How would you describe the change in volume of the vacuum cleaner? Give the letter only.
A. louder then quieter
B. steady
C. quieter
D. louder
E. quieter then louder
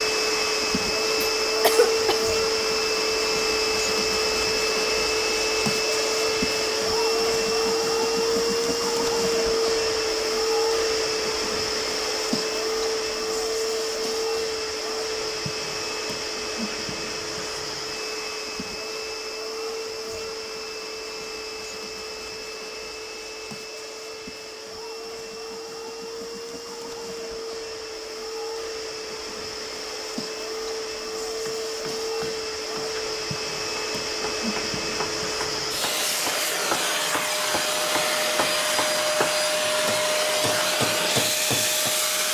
E.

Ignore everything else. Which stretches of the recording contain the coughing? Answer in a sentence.
The coughing can be heard from 1.1 to 2.2 s.